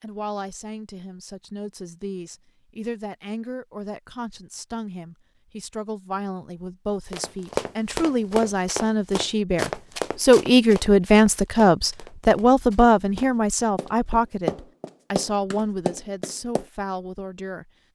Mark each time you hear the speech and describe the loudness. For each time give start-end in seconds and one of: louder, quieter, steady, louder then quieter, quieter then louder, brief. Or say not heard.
0.0-17.7 louder then quieter.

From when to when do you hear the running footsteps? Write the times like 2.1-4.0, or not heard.
7.1-16.6.